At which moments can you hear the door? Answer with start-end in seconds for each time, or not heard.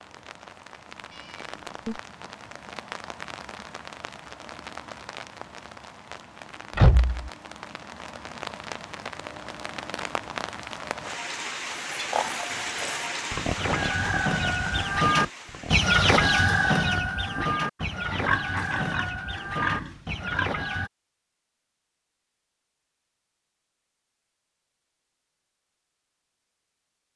6.8-7.3.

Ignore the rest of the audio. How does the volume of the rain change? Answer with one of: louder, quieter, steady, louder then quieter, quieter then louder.
louder.